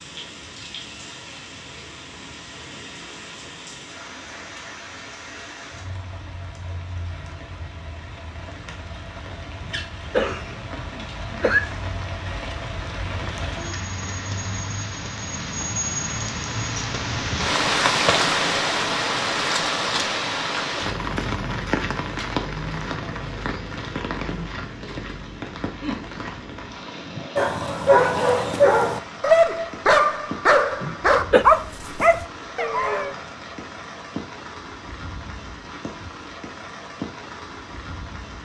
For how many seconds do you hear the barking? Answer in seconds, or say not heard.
6 s.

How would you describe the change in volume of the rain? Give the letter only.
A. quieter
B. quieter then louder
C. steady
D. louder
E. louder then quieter
E.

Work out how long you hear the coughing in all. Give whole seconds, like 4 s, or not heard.
3 s.